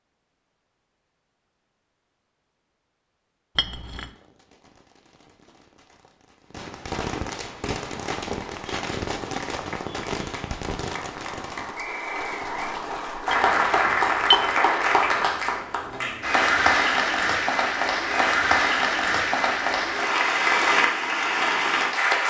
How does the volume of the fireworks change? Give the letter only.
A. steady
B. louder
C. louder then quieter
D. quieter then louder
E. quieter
C.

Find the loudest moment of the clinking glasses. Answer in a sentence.
The loudest moment of the clinking glasses is at 14 seconds.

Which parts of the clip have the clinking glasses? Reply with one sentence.
The clinking glasses can be heard from 3.5 to 4.1 s and from 13.3 to 14.4 s.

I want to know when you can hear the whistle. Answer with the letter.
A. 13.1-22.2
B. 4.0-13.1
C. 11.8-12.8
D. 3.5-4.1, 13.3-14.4
C.